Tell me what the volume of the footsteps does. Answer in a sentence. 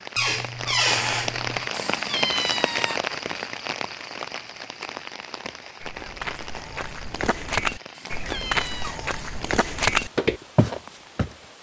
The loudness of the footsteps goes up.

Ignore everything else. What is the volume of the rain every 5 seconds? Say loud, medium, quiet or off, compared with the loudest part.
loud, medium, quiet.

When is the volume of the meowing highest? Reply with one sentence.
The volume of the meowing peaks at 2 seconds.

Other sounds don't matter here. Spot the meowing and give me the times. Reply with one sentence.
The meowing can be heard from 1.7 to 3.0 s and from 7.9 to 8.9 s.